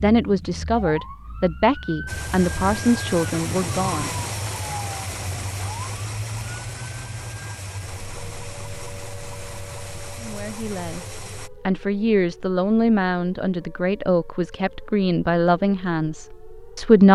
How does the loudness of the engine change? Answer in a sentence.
The loudness of the engine goes down.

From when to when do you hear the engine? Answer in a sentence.
You can hear the engine from 2.0 to 11.5 s.